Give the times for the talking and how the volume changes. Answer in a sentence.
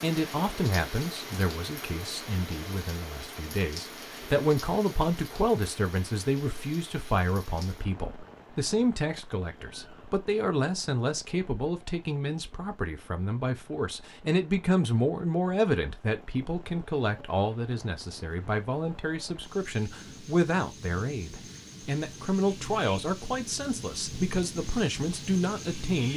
The talking can be heard from 0.0 to 26.1 s, at a steady volume.